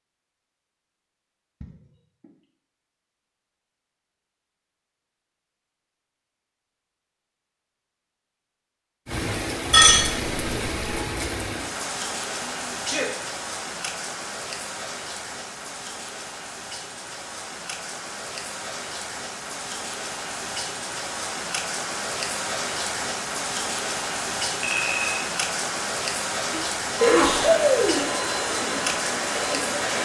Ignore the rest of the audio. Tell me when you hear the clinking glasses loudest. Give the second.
10 s.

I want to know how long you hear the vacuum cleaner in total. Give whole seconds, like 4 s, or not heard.
3 s.